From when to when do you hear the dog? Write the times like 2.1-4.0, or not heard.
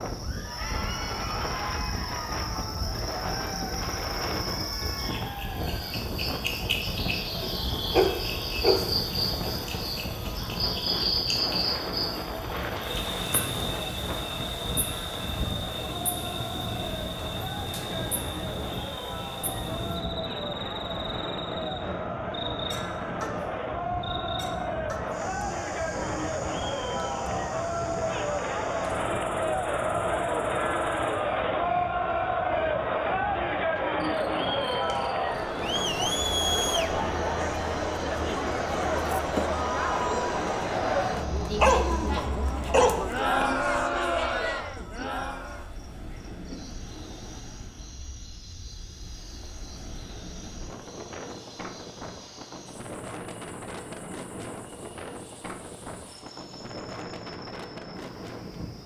7.4-8.9, 41.6-43.5.